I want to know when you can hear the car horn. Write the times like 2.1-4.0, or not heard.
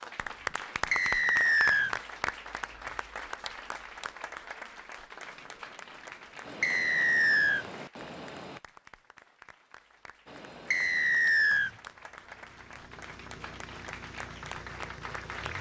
not heard.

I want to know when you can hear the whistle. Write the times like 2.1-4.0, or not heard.
0.9-1.9, 6.6-7.7, 10.7-11.7.